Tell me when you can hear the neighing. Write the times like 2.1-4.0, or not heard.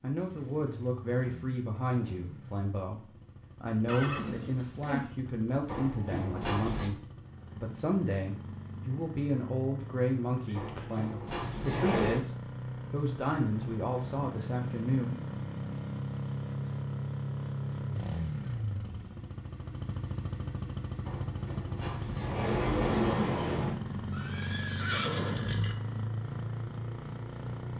3.9-5.0, 10.5-11.5, 24.1-25.8.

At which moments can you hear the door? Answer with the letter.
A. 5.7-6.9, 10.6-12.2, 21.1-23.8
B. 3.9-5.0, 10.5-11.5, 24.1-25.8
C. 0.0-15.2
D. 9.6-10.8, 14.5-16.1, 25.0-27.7
A.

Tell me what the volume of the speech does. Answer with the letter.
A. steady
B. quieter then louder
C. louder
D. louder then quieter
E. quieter
A.